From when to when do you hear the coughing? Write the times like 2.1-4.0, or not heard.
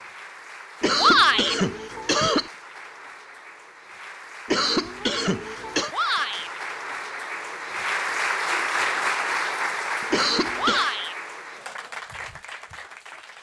0.8-2.5, 4.5-5.9, 10.1-10.9.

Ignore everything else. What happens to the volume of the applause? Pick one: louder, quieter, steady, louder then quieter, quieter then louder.
louder then quieter.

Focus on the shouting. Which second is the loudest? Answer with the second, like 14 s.
1 s.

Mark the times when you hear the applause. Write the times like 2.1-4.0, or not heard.
0.0-13.3.